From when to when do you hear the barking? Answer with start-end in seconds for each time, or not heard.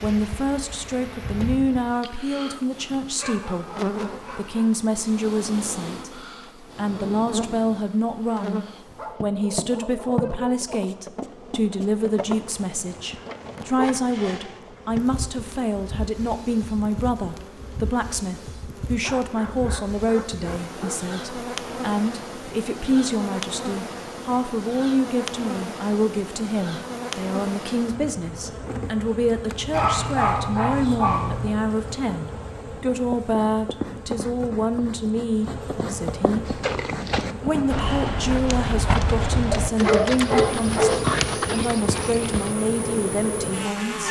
2.9-4.7, 8.9-10.7, 19.0-21.0, 29.7-31.5, 39.5-41.0.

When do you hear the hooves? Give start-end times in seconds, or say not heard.
36.5-42.5.